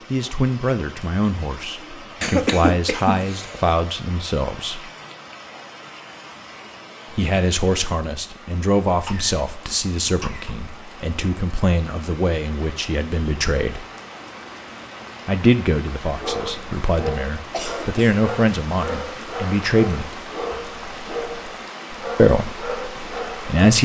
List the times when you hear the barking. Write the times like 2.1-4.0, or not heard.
16.1-23.6.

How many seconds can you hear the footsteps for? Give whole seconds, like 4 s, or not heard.
not heard.